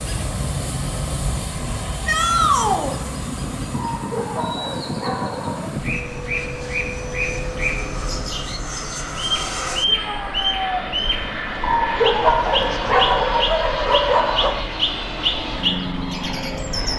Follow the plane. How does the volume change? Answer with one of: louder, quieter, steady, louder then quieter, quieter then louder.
steady.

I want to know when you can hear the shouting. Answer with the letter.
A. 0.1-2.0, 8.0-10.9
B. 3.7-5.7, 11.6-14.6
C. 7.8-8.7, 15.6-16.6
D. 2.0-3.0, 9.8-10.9
D.